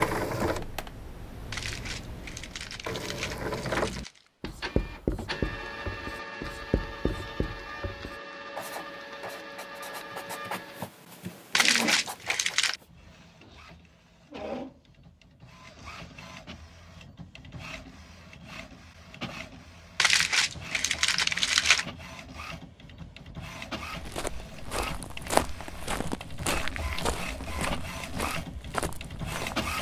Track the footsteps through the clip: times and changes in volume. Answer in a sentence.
You can hear the footsteps from 23.9 to 29.6 s, getting louder then quieter.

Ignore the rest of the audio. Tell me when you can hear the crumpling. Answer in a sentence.
You can hear the crumpling from 1.5 to 4.2 s, from 11.6 to 12.8 s and from 19.9 to 21.9 s.